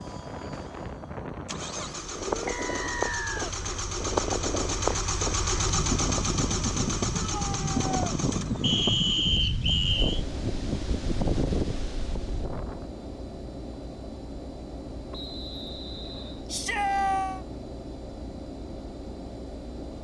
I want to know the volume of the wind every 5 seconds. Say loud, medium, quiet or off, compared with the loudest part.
loud, loud, loud, off.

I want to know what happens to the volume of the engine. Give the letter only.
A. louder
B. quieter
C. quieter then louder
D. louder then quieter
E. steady
D.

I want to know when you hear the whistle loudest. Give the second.
9 s.